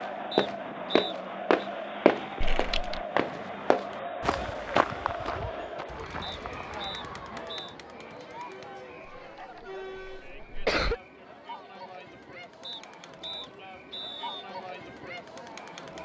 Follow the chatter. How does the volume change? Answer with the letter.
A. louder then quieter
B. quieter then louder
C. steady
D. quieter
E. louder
D.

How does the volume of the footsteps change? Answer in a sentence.
The volume of the footsteps goes down.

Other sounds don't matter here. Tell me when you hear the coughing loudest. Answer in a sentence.
The volume of the coughing peaks at 11 seconds.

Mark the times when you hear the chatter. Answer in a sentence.
You can hear the chatter from 0.0 to 16.0 s.